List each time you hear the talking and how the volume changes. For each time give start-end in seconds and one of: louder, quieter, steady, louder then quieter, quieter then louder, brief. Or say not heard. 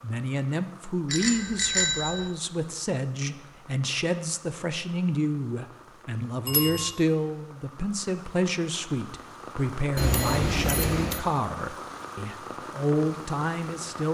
0.0-14.0 steady.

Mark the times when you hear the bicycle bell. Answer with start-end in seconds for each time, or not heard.
1.1-2.3, 6.5-6.9, 9.9-11.2.